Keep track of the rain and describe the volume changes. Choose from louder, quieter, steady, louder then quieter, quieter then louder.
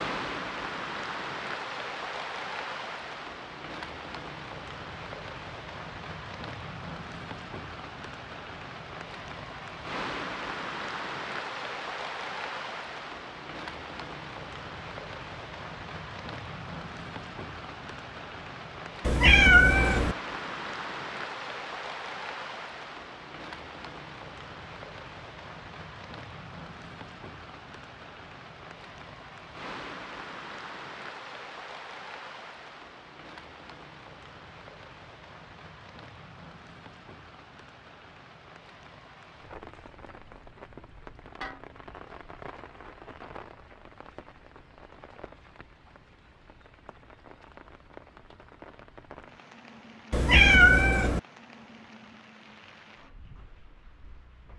quieter.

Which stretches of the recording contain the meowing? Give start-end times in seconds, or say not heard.
19.1-20.1, 50.1-51.2.